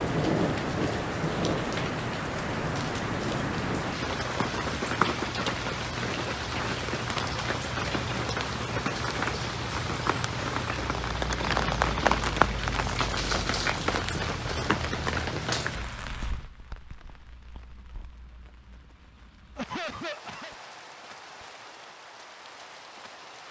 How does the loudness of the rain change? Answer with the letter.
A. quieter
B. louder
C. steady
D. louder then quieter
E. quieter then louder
A.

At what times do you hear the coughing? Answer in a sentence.
The coughing can be heard from 19.6 to 20.6 s.